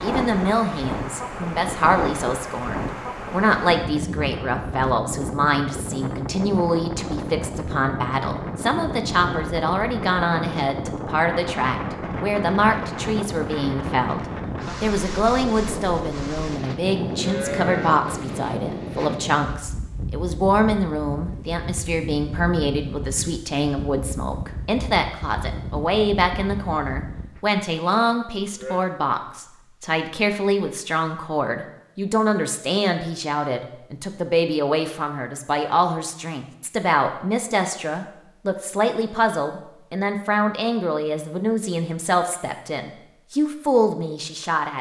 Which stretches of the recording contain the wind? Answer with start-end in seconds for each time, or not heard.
0.0-27.4.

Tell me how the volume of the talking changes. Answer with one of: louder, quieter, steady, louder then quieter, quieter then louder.
steady.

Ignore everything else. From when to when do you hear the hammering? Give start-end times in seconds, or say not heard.
not heard.